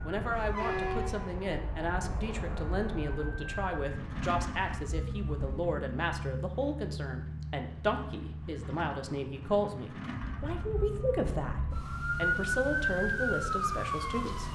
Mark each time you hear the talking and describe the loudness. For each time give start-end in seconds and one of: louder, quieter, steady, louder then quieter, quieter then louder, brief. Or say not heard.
0.0-14.5 steady.